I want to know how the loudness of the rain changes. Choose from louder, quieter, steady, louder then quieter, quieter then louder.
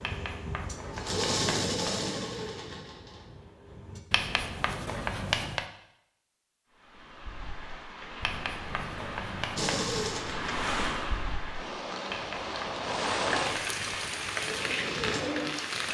louder.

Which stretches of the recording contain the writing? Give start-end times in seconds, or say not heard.
0.0-1.8, 4.1-5.7, 8.2-9.8, 12.1-14.1.